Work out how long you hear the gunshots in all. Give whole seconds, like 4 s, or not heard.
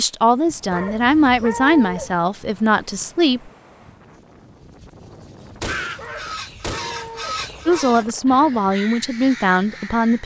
2 s.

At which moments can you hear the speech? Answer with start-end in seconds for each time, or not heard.
0.0-3.5, 7.7-10.2.